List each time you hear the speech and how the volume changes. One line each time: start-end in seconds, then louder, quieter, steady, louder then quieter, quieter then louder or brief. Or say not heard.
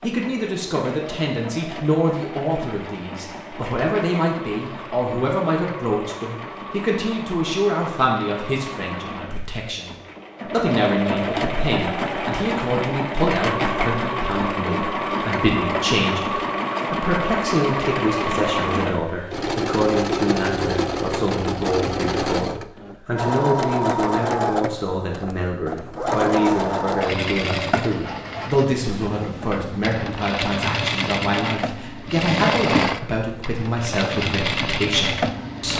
0.0-35.7 steady.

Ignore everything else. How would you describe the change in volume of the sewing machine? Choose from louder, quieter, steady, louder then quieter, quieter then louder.
louder.